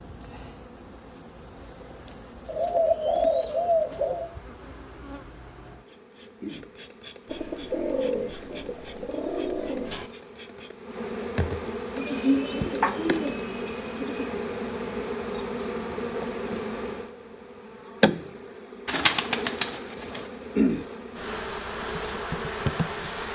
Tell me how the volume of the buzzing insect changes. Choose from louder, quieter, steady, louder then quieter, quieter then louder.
louder.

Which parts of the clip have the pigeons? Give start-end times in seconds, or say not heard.
2.5-4.3, 7.2-10.1, 11.9-14.3, 18.9-20.2.